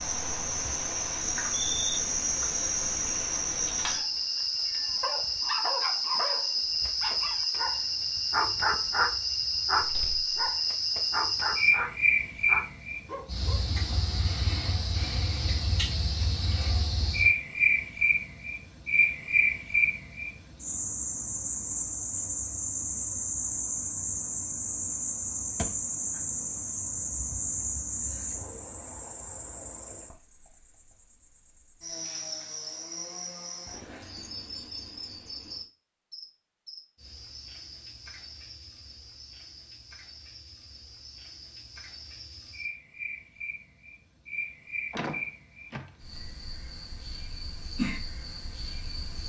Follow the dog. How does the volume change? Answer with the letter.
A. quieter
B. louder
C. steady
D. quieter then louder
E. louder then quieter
E.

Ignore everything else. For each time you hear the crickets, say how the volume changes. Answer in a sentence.
You can hear the crickets from 0.0 to 49.2 s, getting quieter.